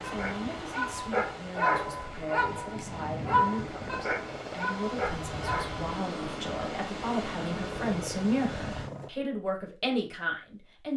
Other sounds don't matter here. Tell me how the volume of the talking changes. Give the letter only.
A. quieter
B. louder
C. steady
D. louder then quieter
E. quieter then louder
B.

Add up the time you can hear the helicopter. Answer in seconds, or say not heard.
9 s.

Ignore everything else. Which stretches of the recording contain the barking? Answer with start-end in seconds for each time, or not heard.
0.0-5.8.